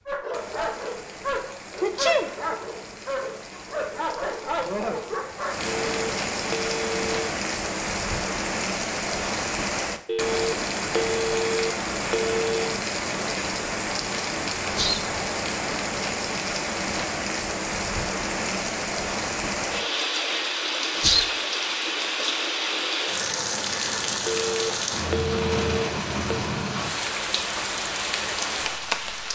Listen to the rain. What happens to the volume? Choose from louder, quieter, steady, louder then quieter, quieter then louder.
louder.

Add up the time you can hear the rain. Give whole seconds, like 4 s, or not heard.
29 s.